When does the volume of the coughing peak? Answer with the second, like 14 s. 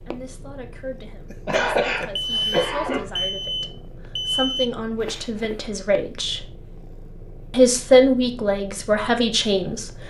2 s.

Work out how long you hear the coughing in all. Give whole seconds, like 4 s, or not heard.
2 s.